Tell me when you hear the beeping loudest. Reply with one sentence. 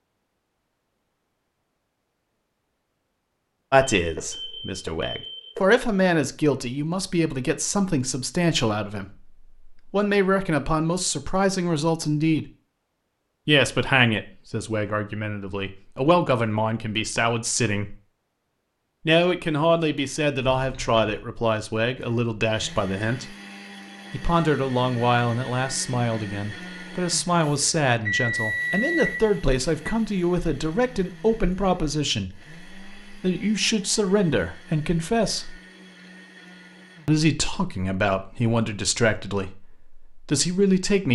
The volume of the beeping peaks at 28 seconds.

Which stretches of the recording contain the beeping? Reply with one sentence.
You can hear the beeping from 4.0 to 5.6 s, from 20.6 to 21.2 s and from 27.4 to 29.9 s.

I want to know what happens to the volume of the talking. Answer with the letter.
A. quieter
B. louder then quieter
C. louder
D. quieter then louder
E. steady
E.